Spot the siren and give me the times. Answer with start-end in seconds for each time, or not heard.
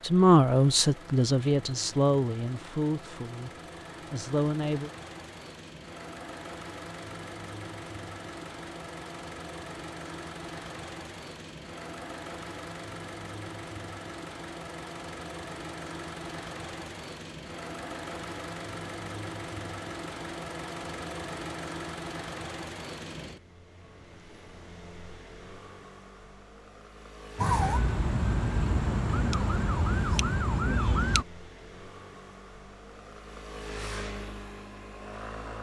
27.4-31.2.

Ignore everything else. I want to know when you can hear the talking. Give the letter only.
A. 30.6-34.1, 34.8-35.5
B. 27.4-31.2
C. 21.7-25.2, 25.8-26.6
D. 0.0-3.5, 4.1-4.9
D.